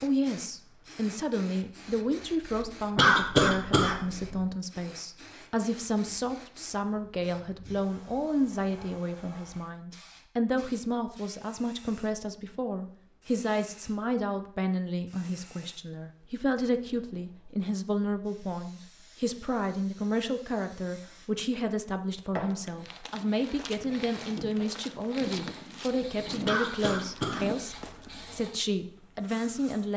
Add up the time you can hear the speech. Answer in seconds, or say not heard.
30 s.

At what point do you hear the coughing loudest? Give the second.
3 s.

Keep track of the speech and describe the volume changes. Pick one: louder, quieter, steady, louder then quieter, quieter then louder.
steady.